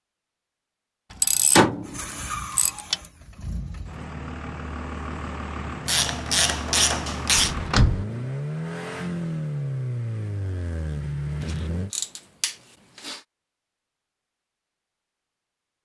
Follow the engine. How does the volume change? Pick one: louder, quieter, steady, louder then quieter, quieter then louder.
louder.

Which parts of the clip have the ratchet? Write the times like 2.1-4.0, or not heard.
1.1-3.0, 5.8-7.5, 11.9-13.2.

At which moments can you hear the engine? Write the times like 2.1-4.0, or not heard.
1.8-11.9.